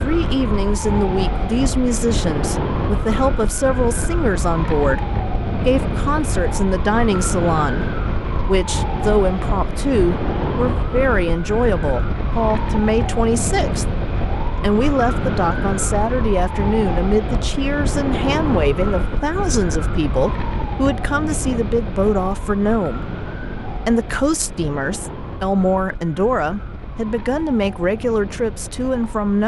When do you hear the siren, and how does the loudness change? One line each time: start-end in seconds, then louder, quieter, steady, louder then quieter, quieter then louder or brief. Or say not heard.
0.0-29.4 quieter.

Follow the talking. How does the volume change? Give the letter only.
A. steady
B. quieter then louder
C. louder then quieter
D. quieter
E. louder
A.